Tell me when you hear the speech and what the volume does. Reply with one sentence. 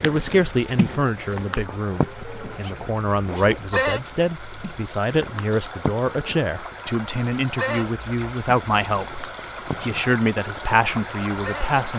The speech can be heard from 0.0 to 11.9 s, at a steady volume.